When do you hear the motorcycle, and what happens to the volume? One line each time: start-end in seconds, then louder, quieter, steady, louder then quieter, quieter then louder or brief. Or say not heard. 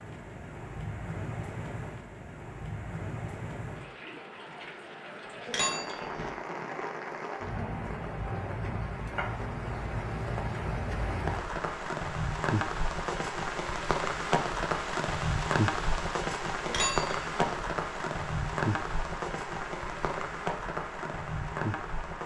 not heard.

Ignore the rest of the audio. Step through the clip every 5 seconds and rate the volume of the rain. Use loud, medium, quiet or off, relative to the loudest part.
medium, medium, loud, loud, loud.